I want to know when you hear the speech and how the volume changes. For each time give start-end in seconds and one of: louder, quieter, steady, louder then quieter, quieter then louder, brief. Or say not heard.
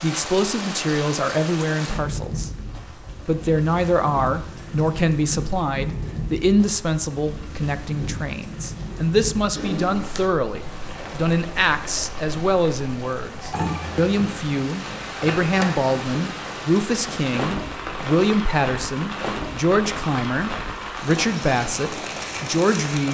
0.0-23.1 steady.